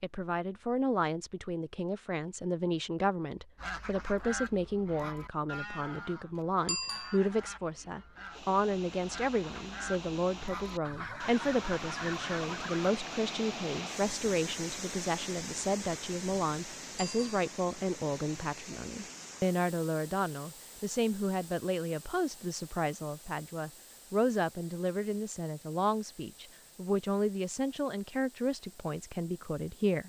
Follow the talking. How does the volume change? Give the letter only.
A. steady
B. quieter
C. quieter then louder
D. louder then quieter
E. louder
A.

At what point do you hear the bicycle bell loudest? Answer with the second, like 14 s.
7 s.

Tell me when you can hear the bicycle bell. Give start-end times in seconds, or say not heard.
6.7-7.2, 16.9-17.4.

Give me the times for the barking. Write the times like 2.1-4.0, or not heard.
not heard.